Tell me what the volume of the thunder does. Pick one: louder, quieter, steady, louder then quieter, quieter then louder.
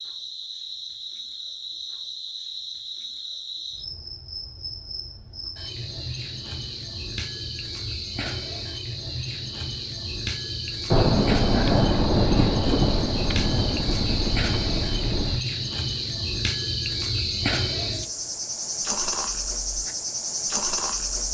quieter.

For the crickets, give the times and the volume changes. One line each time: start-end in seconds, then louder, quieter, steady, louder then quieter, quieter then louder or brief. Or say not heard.
0.0-21.2 louder.